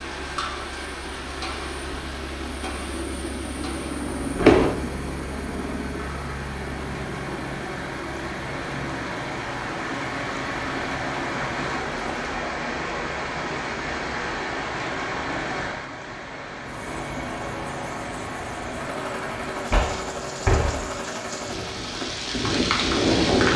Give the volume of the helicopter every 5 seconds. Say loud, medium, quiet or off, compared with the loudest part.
loud, loud, medium, loud, loud.